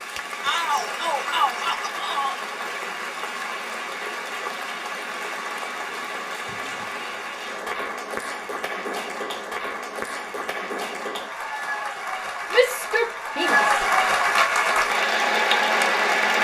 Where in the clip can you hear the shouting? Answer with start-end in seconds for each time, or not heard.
0.4-2.4, 12.5-13.8.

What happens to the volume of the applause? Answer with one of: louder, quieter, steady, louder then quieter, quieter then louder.
louder.